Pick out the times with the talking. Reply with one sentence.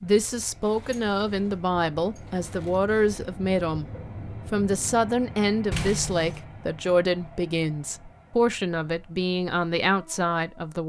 You can hear the talking from 0.0 to 3.9 s and from 4.5 to 10.8 s.